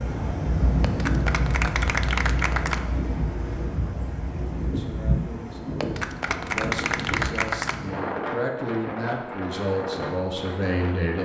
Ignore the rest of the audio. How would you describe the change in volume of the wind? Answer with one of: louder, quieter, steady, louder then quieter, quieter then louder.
quieter.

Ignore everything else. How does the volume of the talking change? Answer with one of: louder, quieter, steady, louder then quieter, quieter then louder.
louder.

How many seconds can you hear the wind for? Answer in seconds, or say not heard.
11 s.